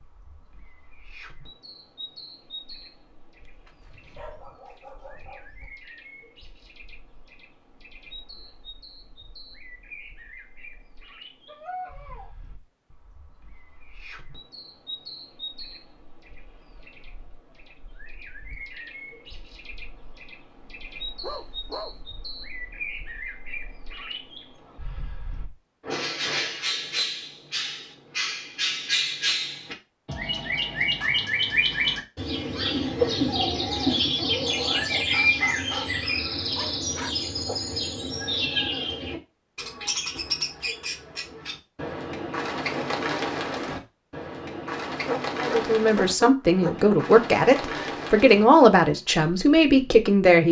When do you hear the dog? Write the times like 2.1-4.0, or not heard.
3.5-5.7, 11.4-12.3, 21.2-21.9, 35.1-37.1, 45.0-47.0.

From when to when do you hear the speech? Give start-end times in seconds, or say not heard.
45.4-50.4.